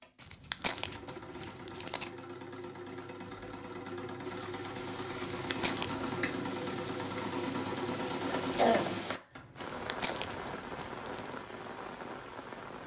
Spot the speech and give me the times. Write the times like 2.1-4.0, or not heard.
not heard.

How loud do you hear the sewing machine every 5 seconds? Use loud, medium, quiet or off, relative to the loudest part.
medium, loud, off.